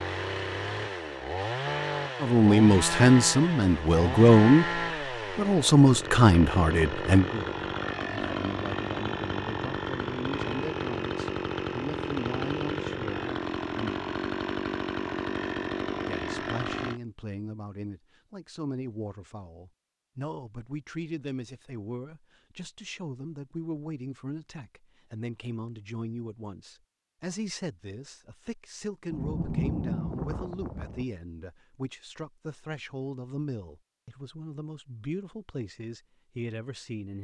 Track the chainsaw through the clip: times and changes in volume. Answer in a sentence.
You can hear the chainsaw from 0.0 to 17.0 s, at a steady volume.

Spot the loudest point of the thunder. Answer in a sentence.
The volume of the thunder peaks at 30 seconds.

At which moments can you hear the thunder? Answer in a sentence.
The thunder can be heard from 29.1 to 31.1 s.